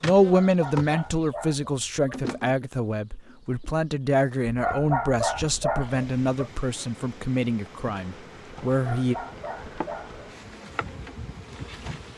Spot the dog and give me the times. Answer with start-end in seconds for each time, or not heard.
0.2-2.1, 4.5-6.5, 8.7-10.2.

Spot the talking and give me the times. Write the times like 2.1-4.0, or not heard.
0.0-9.2.